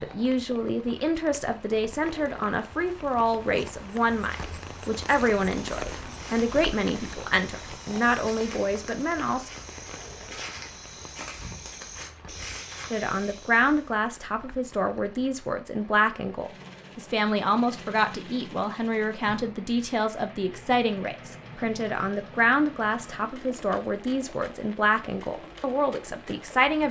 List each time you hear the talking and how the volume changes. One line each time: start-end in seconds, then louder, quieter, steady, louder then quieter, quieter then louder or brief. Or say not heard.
0.0-9.5 steady
12.9-26.8 steady.